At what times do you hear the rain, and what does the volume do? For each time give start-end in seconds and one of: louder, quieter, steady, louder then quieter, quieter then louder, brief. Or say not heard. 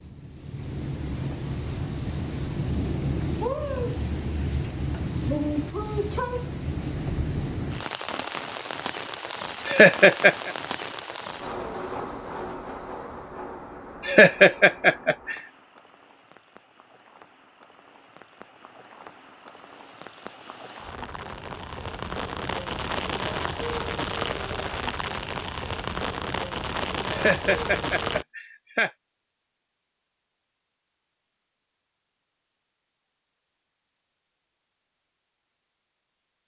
0.0-28.2 quieter then louder.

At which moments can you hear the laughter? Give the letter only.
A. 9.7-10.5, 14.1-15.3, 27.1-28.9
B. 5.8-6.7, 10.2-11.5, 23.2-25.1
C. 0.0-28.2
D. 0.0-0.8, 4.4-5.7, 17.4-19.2
A.